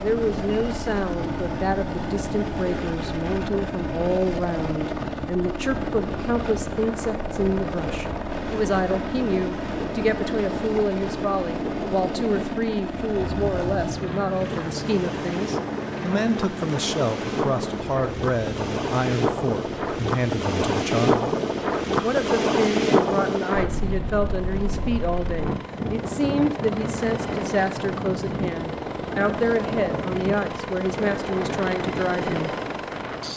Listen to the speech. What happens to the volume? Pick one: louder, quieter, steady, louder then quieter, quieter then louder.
steady.